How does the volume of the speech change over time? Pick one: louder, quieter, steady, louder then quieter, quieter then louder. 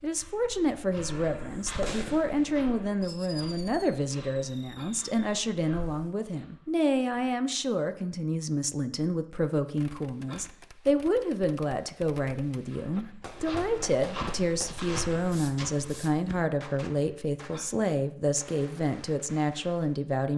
steady.